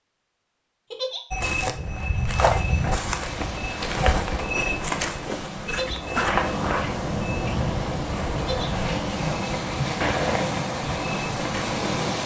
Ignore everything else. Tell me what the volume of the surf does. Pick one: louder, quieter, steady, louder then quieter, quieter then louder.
louder.